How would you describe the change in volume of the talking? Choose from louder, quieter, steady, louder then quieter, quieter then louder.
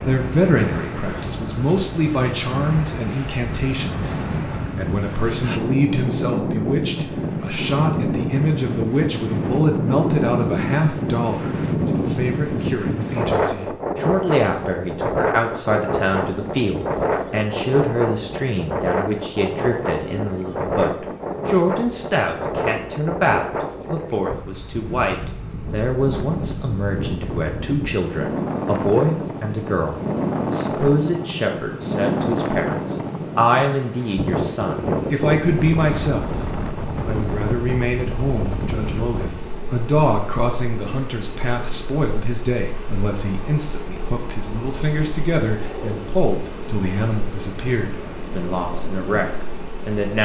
steady.